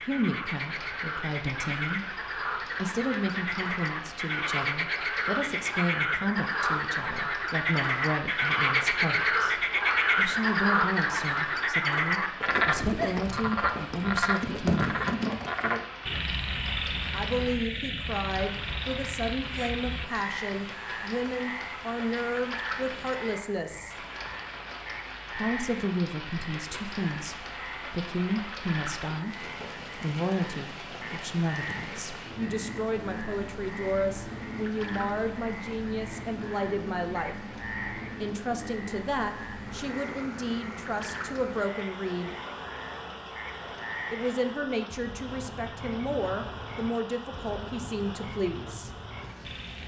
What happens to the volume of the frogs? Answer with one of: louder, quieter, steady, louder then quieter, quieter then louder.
quieter.